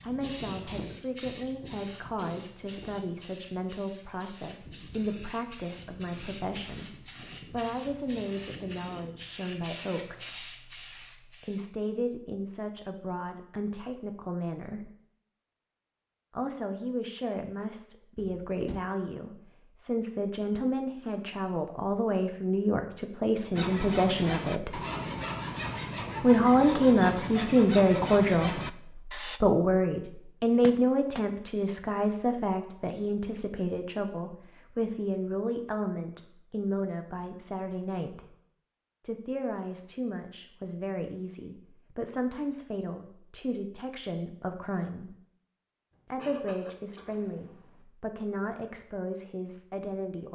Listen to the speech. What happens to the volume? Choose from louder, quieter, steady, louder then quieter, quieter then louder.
louder then quieter.